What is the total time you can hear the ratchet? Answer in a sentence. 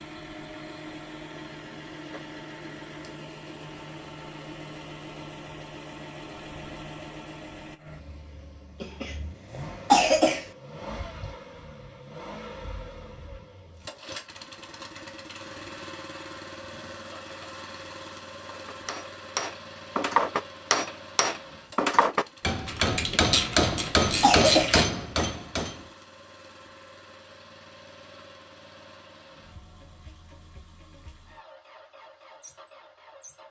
The ratchet can be heard for 2 seconds in total.